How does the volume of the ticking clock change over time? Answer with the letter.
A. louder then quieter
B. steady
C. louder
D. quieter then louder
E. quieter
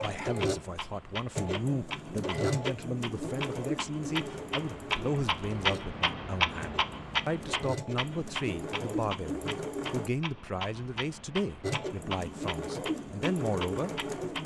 A.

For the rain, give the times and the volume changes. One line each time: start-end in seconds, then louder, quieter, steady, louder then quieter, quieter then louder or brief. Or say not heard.
not heard.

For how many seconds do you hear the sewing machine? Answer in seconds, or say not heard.
13 s.